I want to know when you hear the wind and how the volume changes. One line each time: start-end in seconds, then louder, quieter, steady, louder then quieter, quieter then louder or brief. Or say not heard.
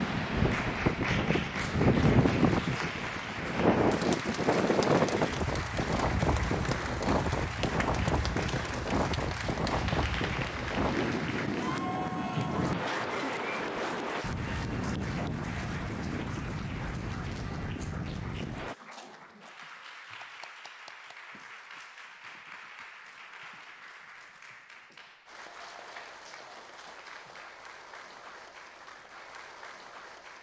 0.0-18.8 quieter.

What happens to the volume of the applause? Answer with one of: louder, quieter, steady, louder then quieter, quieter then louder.
quieter.